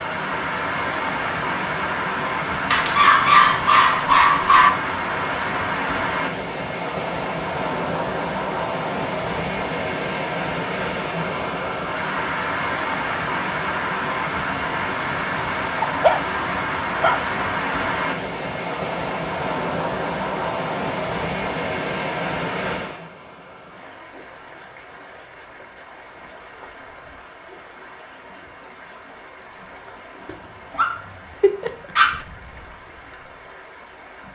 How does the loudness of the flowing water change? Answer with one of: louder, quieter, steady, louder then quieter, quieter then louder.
quieter.